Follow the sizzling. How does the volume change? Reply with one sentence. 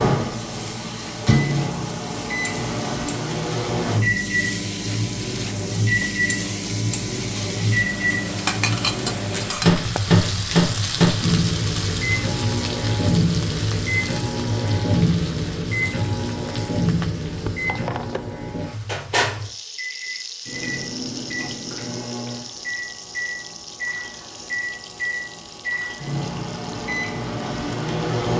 The loudness of the sizzling goes up, then down.